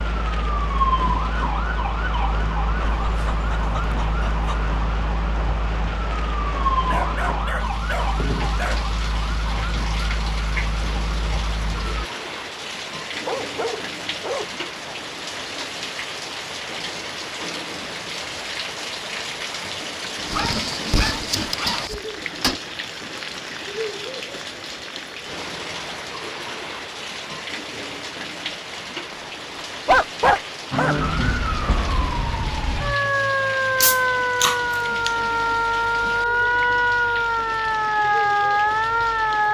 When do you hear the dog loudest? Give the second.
30 s.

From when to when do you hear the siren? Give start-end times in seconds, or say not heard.
0.0-12.1, 30.7-39.4.